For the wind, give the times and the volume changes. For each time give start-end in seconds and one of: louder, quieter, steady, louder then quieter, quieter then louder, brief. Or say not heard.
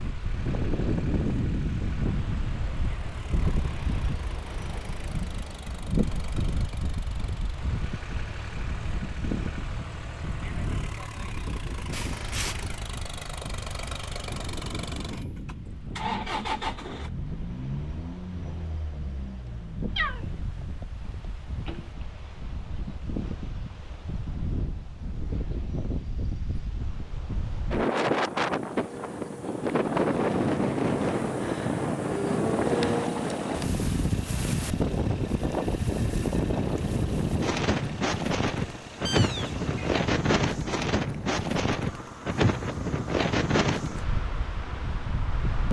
0.0-45.6 quieter then louder.